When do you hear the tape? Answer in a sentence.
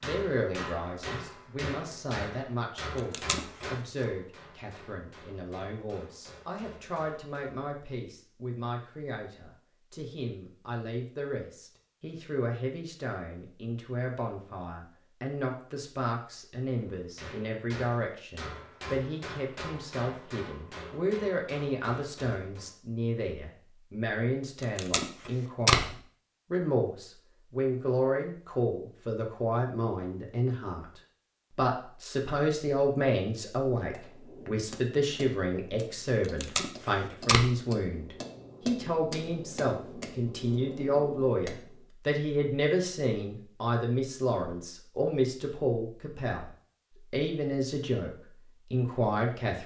The tape can be heard from 3.0 to 3.6 s, from 24.6 to 25.9 s and from 36.4 to 37.5 s.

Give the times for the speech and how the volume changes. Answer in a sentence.
The speech can be heard from 0.0 to 49.6 s, getting louder.